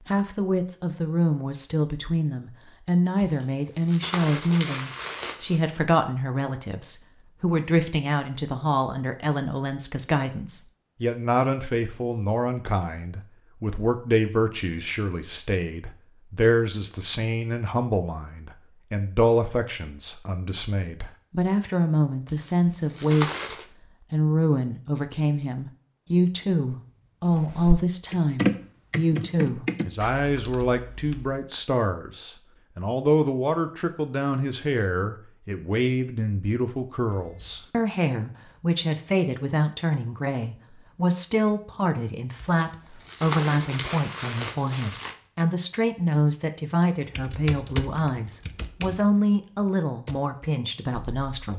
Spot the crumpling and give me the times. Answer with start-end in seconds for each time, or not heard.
3.2-5.6, 22.2-23.6, 42.4-45.1.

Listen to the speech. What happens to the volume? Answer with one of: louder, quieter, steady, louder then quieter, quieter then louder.
steady.